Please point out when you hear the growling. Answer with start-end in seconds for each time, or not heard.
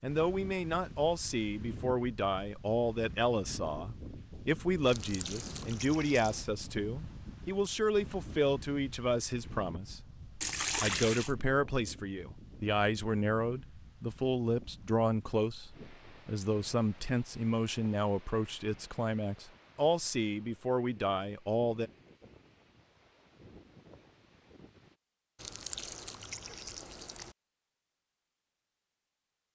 not heard.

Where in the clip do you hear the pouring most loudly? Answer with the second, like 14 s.
11 s.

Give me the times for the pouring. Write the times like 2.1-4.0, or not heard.
4.8-6.5, 10.4-11.3, 25.4-27.4.